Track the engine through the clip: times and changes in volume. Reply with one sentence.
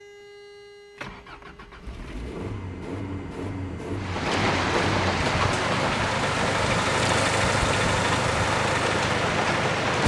The engine can be heard from 0.0 to 10.0 s, getting louder.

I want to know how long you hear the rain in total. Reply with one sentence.
The rain can be heard for 6 seconds in total.